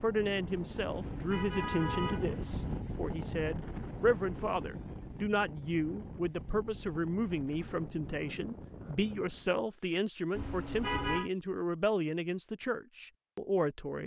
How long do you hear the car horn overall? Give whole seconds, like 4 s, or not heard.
3 s.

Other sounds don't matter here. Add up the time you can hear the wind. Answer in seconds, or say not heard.
10 s.